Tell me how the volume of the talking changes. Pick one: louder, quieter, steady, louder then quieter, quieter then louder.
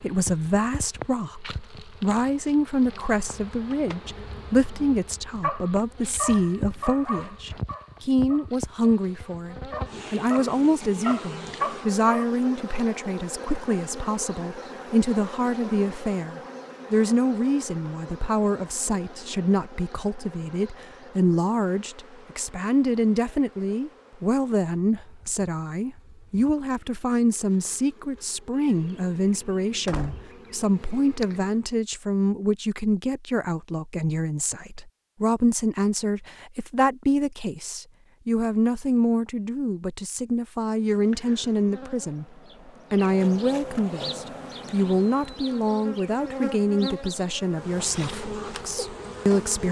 steady.